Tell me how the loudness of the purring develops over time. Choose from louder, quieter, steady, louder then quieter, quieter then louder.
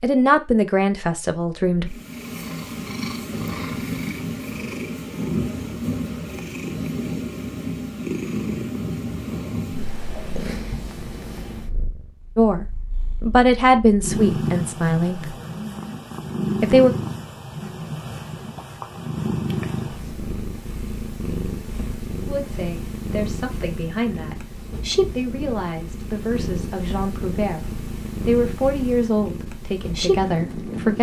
steady.